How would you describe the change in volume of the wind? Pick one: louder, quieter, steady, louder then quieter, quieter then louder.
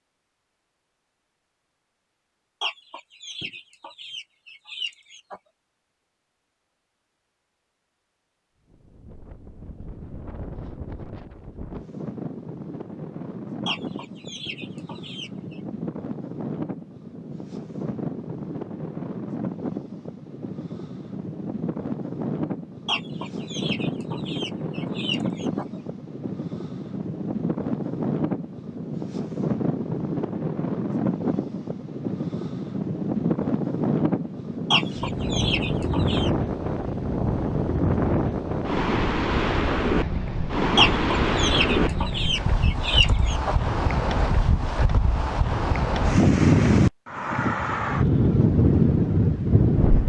louder.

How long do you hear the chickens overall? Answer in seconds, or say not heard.
12 s.